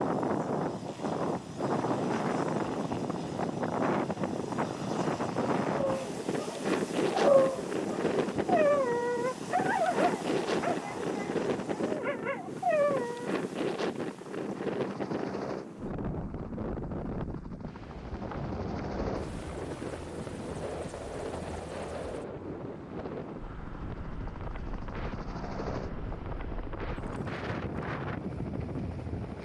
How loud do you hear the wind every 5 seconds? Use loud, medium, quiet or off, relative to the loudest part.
loud, loud, loud, medium, medium, medium.